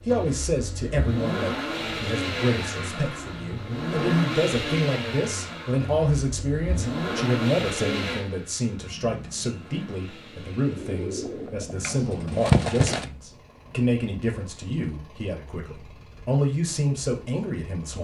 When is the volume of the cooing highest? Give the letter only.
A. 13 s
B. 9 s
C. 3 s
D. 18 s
A.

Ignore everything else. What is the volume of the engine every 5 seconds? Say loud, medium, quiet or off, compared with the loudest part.
loud, loud, quiet, quiet.